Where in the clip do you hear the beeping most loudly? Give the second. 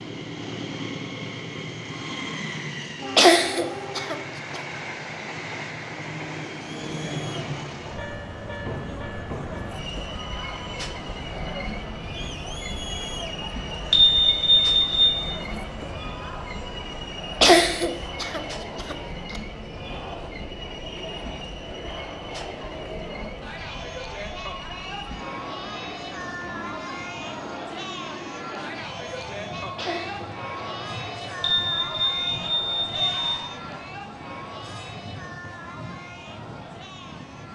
14 s.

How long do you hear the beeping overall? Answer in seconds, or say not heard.
3 s.